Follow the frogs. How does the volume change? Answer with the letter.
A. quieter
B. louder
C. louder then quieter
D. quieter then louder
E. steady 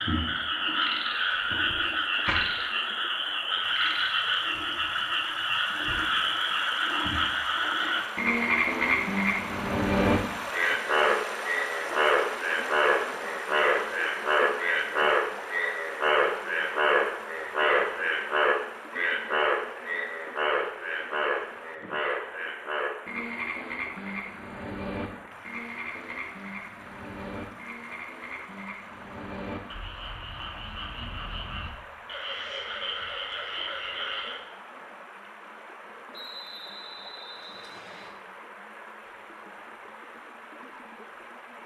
A.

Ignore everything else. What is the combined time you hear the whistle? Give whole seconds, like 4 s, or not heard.
2 s.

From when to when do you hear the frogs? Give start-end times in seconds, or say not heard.
0.0-34.5.